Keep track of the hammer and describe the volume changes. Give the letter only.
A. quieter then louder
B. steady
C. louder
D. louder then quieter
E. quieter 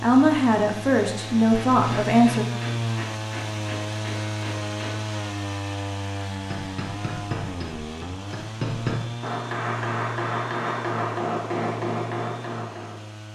C.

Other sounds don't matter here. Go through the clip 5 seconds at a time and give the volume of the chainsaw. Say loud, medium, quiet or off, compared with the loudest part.
loud, loud, medium.